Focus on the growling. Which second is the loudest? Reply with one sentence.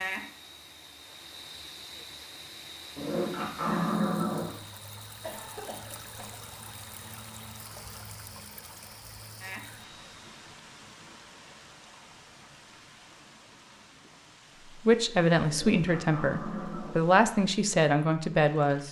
The volume of the growling peaks at 4 seconds.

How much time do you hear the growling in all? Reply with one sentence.
You can hear the growling for 3 seconds altogether.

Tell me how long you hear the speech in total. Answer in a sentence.
The speech can be heard for 4 seconds in total.